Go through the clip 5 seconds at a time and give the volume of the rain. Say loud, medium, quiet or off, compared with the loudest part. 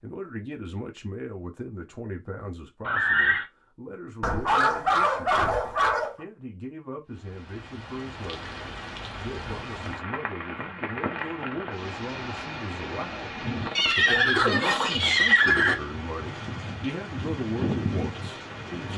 off, medium, loud, loud.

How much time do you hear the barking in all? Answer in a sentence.
You can hear the barking for 2 seconds altogether.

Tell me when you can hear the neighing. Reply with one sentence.
You can hear the neighing from 2.9 to 3.5 s and from 13.8 to 15.8 s.